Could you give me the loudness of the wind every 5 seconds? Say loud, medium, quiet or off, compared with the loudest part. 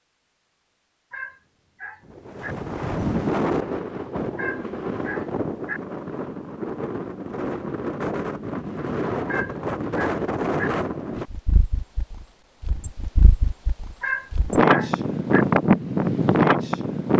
medium, medium, medium, loud.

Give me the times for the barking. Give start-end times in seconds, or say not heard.
1.1-2.5, 4.3-5.8, 9.2-10.7, 14.0-15.4.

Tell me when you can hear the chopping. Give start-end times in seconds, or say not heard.
not heard.